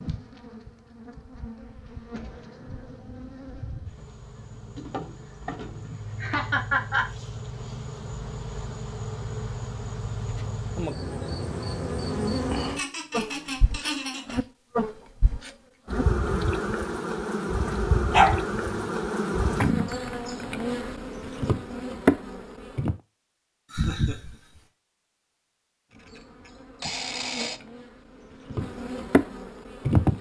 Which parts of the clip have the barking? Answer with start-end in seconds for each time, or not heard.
17.6-18.9.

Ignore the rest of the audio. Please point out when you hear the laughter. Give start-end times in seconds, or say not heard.
5.8-7.0, 12.8-14.4, 23.7-24.6.